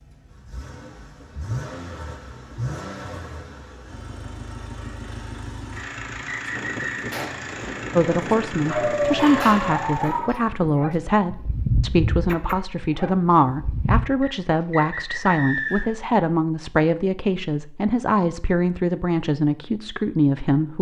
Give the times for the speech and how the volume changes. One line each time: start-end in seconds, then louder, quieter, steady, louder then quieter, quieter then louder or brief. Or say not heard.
8.0-20.7 steady.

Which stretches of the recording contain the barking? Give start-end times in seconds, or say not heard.
8.7-14.1.